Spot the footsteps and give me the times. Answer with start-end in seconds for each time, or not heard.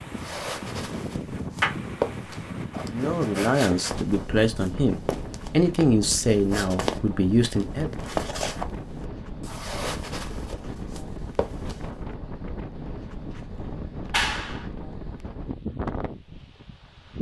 0.1-11.8.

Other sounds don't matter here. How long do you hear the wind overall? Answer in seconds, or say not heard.
17 s.